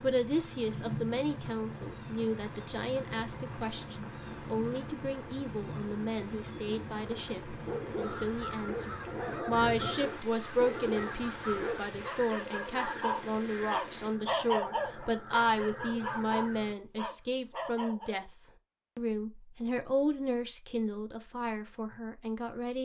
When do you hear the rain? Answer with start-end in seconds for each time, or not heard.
0.0-14.2.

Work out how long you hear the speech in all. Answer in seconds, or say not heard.
22 s.